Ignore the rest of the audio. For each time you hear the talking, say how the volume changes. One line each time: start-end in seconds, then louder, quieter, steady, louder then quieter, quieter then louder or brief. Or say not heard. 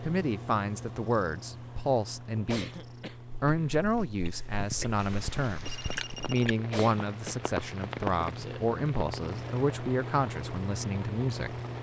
0.0-11.6 steady.